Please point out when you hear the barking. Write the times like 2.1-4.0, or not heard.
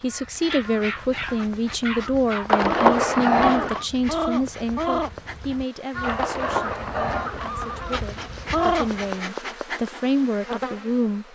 0.5-2.5, 6.0-7.2.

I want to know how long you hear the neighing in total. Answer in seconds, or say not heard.
3 s.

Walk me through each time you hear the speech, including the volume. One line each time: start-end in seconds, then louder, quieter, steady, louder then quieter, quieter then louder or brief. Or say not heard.
0.0-11.2 quieter then louder.